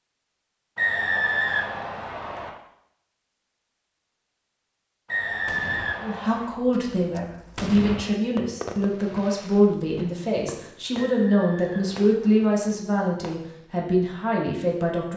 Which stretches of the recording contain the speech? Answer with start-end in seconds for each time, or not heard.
6.0-15.1.